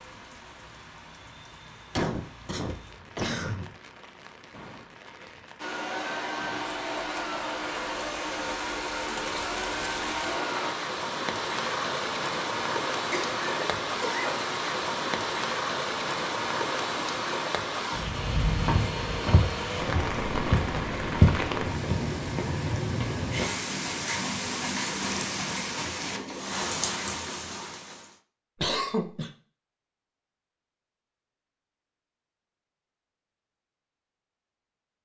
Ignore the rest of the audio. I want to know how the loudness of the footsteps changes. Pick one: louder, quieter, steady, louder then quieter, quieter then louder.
louder then quieter.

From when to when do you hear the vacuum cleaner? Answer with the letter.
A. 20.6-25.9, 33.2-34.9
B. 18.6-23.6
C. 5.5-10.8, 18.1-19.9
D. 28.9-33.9
C.